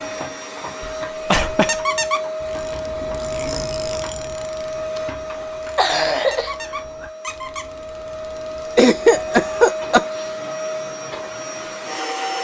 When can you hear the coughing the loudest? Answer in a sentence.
The volume of the coughing peaks at 9 seconds.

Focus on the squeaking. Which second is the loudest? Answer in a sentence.
The volume of the squeaking peaks at 2 seconds.